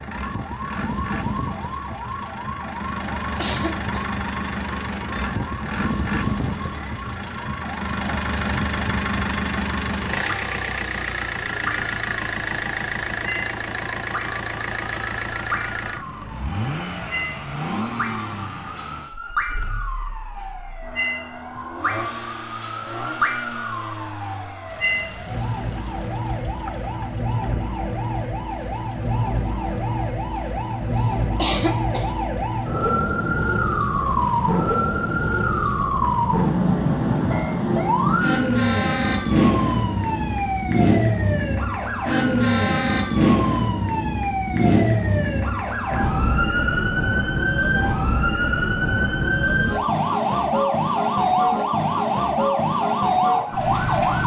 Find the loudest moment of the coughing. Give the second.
32 s.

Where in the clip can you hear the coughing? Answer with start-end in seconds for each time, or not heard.
3.4-4.1, 31.4-32.2.